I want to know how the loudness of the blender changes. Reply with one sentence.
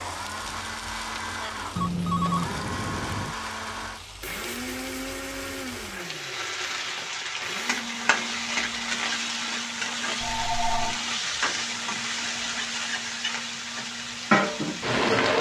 The loudness of the blender goes down.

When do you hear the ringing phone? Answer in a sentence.
You can hear the ringing phone from 1.8 to 3.4 s and from 10.2 to 11.0 s.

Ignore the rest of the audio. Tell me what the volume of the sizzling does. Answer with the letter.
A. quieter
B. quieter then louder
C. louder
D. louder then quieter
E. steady
C.